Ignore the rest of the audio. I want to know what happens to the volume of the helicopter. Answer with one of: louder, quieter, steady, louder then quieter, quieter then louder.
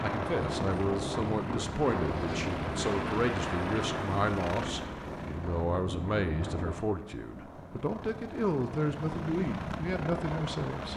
quieter then louder.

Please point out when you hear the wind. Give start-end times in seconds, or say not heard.
0.0-7.0.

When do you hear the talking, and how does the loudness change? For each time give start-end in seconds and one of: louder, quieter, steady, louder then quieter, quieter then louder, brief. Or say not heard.
0.0-10.9 steady.